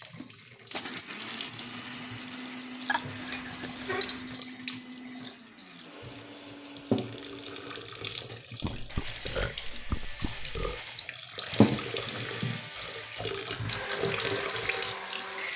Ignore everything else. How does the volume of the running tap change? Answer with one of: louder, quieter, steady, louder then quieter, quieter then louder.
louder.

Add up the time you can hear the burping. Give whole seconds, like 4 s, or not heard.
4 s.